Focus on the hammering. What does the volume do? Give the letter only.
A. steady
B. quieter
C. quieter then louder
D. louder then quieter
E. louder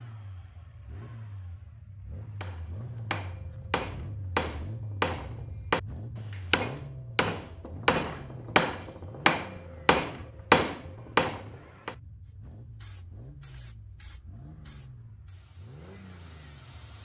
E.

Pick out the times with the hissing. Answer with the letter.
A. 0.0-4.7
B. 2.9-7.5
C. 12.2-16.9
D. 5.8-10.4
C.